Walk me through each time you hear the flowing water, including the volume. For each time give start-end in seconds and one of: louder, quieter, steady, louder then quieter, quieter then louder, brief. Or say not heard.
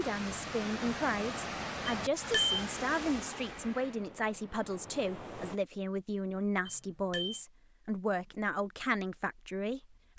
0.0-5.6 quieter.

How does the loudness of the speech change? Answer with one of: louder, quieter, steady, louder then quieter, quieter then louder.
steady.